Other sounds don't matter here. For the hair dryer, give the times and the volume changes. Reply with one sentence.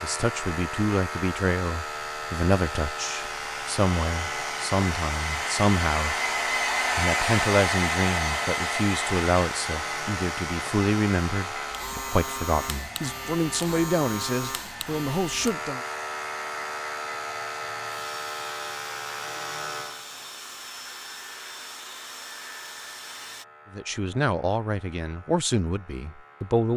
You can hear the hair dryer from 0.1 to 23.4 s, getting louder then quieter.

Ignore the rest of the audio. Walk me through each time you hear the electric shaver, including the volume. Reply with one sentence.
You can hear the electric shaver from 0.0 to 26.7 s, getting quieter.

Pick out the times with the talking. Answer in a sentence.
The talking can be heard from 0.0 to 6.2 s, from 7.0 to 15.8 s and from 23.7 to 26.7 s.